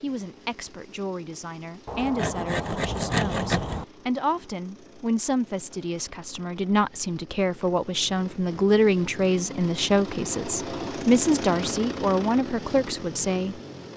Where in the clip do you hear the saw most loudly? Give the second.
3 s.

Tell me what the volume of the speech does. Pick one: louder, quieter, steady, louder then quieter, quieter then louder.
louder.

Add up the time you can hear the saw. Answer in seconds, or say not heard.
2 s.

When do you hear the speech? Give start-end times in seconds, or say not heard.
0.0-13.6.